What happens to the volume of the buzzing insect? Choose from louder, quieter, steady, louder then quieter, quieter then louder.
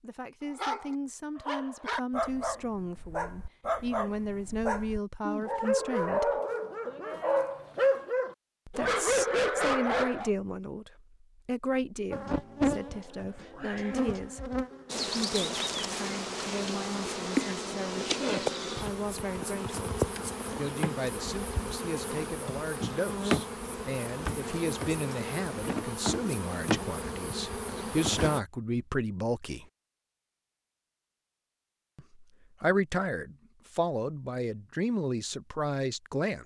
steady.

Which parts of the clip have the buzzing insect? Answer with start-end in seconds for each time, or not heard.
12.1-28.4.